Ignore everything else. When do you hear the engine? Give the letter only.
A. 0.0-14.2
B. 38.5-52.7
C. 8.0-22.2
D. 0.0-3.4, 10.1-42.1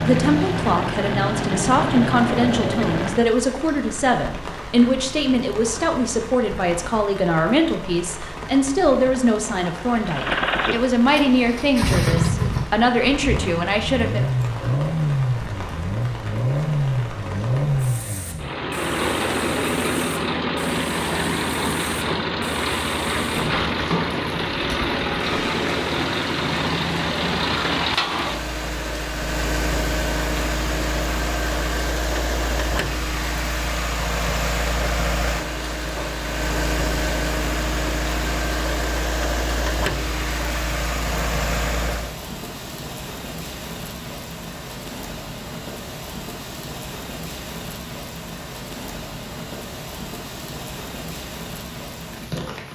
D.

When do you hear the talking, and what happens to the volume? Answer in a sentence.
The talking can be heard from 0.0 to 14.2 s, at a steady volume.